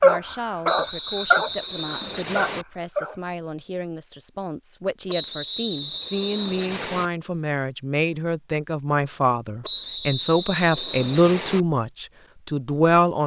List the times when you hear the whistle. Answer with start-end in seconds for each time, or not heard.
0.7-2.6, 5.0-7.1, 9.6-11.7.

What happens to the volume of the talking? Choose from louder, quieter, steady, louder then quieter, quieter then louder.
louder.